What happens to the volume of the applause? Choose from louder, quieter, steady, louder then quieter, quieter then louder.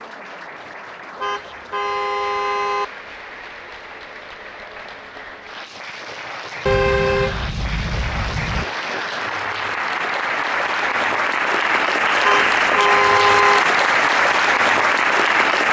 louder.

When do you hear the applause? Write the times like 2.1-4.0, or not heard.
0.0-15.6.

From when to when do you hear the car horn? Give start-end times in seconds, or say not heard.
1.2-2.9, 6.7-8.7, 12.2-13.7.